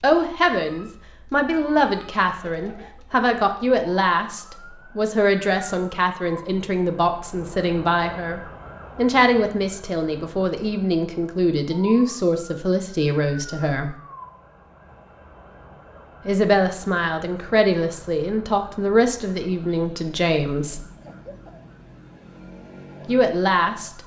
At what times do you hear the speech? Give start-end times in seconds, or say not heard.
0.0-13.9, 16.2-20.9, 23.1-24.0.